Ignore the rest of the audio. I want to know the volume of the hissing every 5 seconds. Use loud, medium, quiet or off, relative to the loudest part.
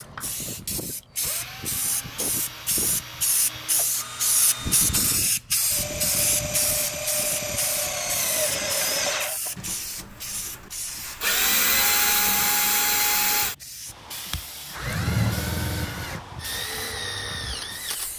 loud, loud, medium, medium.